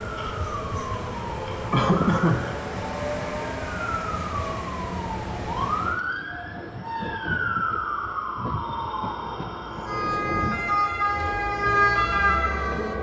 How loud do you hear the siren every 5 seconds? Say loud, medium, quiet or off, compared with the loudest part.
medium, medium, loud.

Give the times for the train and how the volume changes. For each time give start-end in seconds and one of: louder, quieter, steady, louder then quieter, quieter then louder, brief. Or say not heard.
0.0-12.9 quieter.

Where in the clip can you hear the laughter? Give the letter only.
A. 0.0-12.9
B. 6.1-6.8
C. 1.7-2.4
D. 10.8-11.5
C.